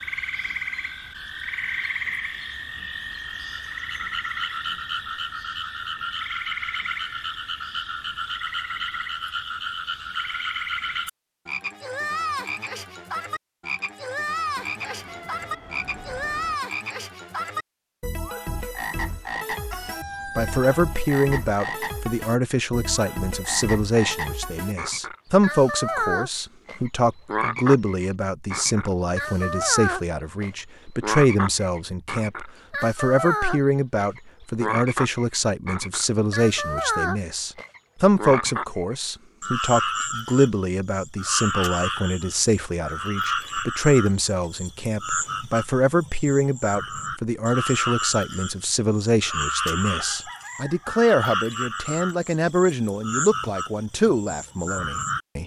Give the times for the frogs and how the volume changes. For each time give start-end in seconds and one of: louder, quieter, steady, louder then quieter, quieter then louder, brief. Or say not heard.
0.0-55.2 steady.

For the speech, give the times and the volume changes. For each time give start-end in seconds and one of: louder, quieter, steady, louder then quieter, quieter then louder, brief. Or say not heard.
20.4-55.4 steady.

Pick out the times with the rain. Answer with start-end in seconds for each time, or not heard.
not heard.